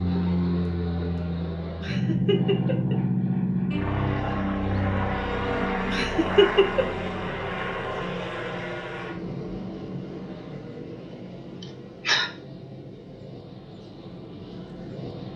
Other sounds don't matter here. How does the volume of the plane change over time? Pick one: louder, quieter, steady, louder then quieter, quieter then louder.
quieter.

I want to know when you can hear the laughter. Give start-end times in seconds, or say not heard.
1.8-3.0, 5.9-6.8, 11.6-12.3.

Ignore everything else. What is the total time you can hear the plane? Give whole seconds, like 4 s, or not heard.
15 s.